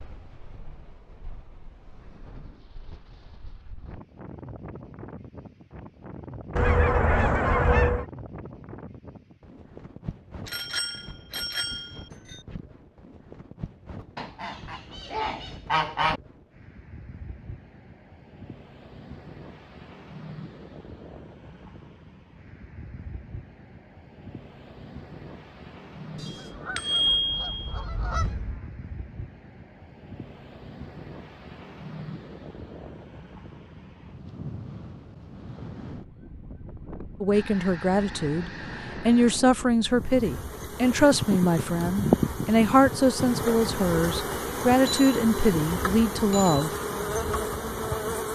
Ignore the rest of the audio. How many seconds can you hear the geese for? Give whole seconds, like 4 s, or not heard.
8 s.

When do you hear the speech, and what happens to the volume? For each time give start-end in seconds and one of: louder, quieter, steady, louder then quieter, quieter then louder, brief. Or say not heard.
37.2-46.7 steady.